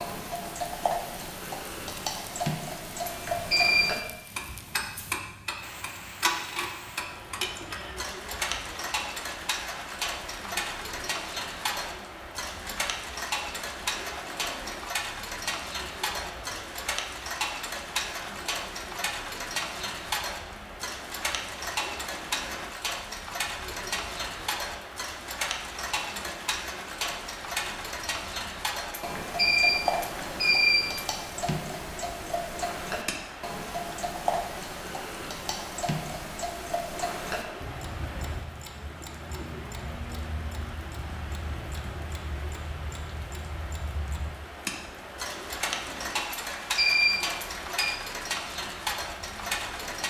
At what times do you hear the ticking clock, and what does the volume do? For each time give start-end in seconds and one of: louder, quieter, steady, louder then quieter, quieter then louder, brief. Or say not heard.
0.0-50.0 steady.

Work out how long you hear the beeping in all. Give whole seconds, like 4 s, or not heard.
4 s.